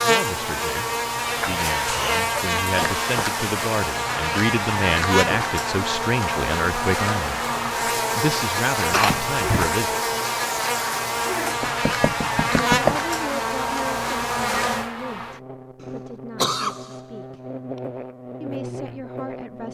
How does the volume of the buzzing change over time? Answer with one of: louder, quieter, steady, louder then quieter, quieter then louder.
quieter.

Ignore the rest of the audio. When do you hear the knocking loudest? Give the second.
13 s.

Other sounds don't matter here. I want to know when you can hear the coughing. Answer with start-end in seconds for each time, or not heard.
1.9-2.9, 8.9-9.8, 15.8-16.9.